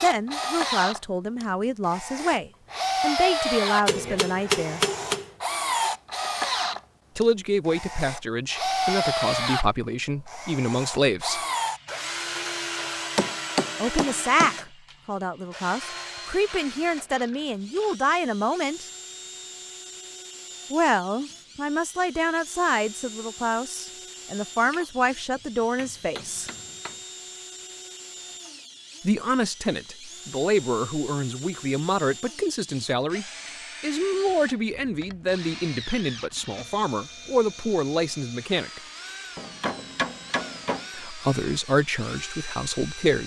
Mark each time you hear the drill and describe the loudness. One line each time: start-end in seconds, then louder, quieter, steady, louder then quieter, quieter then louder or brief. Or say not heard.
0.0-43.2 quieter.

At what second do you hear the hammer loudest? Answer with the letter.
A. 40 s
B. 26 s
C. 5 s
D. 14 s
C.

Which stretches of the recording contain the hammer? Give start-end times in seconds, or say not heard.
3.9-5.3, 13.2-14.6, 24.7-27.0, 39.4-40.9.